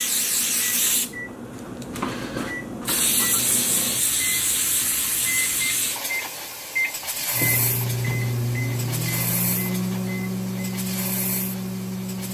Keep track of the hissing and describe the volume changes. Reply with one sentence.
The loudness of the hissing goes down.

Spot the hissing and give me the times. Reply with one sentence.
You can hear the hissing from 0.0 to 12.2 s.